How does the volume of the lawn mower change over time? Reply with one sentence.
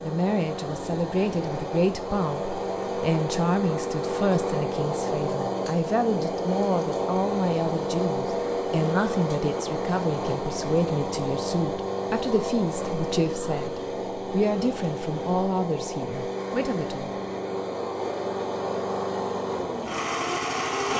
The loudness of the lawn mower stays about the same.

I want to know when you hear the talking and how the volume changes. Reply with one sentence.
You can hear the talking from 0.0 to 17.1 s, at a steady volume.